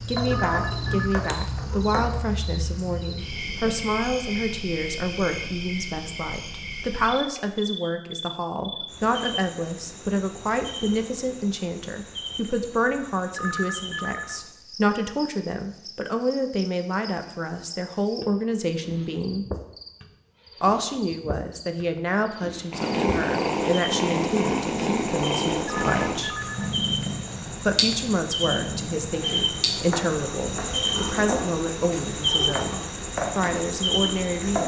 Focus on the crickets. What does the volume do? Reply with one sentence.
The loudness of the crickets goes down, then up.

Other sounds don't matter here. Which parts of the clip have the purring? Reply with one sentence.
The purring can be heard from 0.1 to 2.0 s and from 22.7 to 34.6 s.